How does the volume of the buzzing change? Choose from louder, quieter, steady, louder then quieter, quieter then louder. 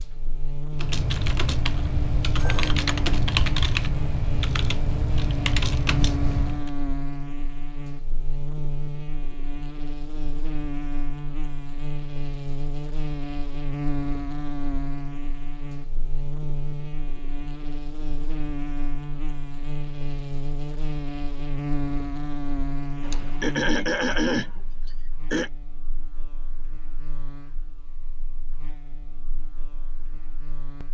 quieter.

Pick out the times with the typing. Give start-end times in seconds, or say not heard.
0.8-6.7.